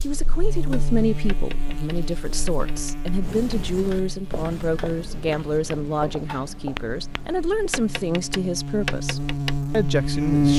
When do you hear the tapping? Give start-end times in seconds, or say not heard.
0.5-9.6.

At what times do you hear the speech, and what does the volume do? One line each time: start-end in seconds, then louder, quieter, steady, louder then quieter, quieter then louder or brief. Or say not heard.
0.0-10.5 steady.